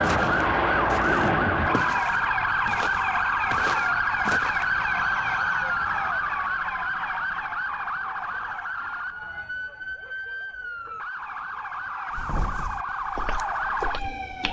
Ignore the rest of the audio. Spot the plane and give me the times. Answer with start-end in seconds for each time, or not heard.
0.0-2.0.